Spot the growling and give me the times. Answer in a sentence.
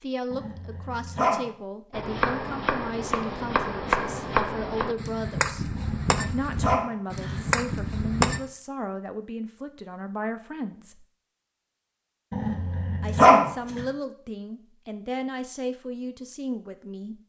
You can hear the growling from 0.3 to 1.5 s, from 5.8 to 7.8 s and from 12.3 to 13.8 s.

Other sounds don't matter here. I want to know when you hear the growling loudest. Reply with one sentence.
The loudest moment of the growling is at 13 seconds.